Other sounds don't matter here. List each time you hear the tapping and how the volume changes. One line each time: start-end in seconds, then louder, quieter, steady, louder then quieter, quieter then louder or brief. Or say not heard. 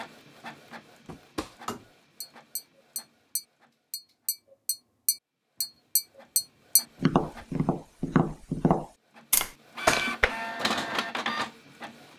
1.1-10.3 louder.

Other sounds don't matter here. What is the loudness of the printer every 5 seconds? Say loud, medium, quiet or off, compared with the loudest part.
quiet, medium, loud.